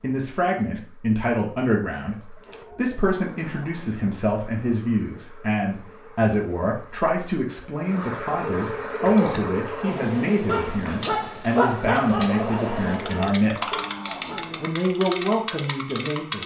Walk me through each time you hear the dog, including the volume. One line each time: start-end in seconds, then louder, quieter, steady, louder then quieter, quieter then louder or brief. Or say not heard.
9.2-14.4 louder then quieter.